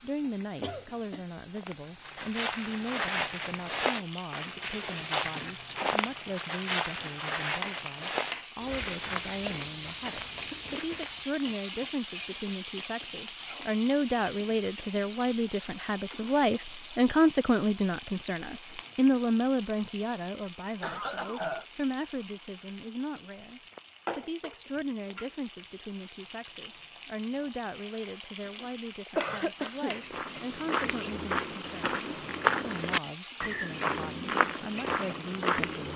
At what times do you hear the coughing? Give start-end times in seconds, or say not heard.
0.6-1.2, 20.8-21.6, 29.1-29.9.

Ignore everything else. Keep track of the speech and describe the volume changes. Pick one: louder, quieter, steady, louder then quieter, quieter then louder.
louder then quieter.